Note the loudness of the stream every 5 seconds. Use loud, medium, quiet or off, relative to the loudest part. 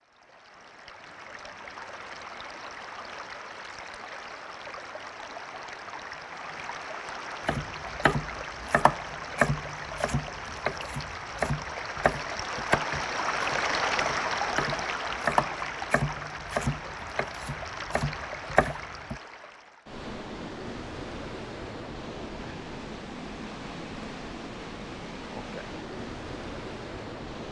medium, medium, loud, medium, medium, medium.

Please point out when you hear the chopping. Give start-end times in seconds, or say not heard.
7.5-19.1.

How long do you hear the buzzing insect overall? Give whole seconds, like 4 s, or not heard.
not heard.